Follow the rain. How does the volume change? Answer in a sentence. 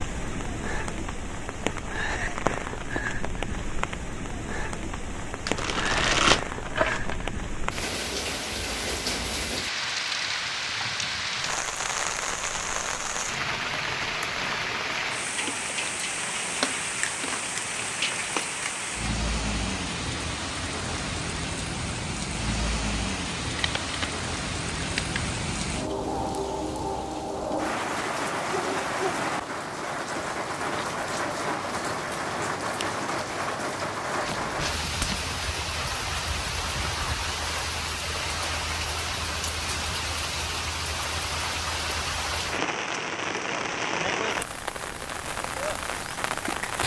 The volume of the rain stays about the same.